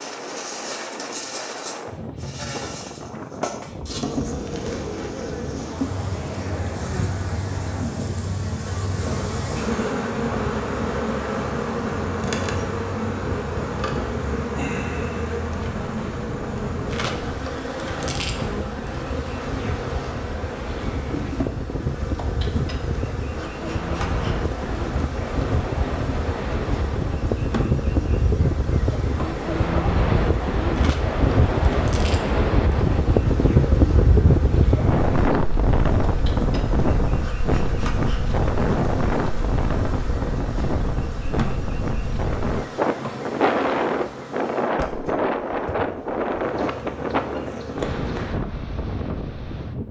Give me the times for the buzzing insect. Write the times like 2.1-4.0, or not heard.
0.0-48.5.